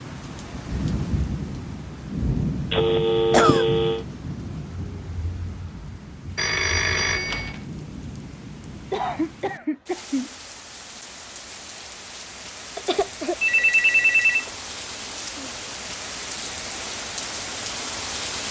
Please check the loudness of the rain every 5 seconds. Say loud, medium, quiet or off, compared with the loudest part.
loud, medium, medium, loud.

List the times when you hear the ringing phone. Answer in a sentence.
The ringing phone can be heard from 2.7 to 4.0 s, from 6.3 to 7.6 s and from 13.4 to 14.5 s.